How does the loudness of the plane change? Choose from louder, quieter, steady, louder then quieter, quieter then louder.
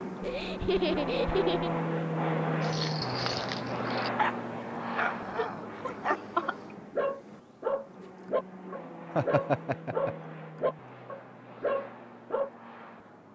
quieter.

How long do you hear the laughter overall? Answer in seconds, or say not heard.
4 s.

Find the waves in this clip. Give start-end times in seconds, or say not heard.
not heard.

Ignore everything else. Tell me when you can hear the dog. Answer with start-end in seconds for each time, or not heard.
2.6-12.5.